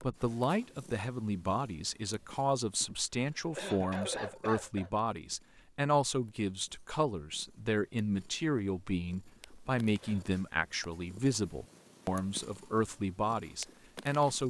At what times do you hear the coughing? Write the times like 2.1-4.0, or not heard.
2.8-4.9, 9.2-10.4.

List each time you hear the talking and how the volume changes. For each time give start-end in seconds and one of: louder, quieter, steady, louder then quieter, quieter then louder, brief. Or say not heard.
0.0-14.4 steady.